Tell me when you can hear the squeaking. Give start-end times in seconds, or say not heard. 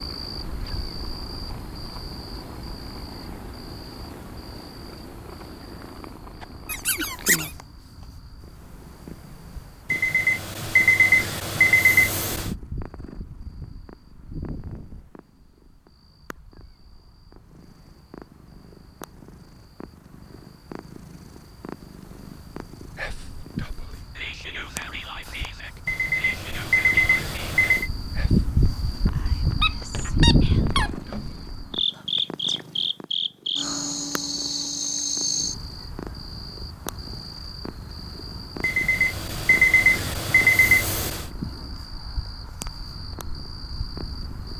6.7-7.5, 28.9-31.3.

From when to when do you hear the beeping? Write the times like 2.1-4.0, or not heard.
9.9-12.5, 25.9-27.9, 38.6-41.3.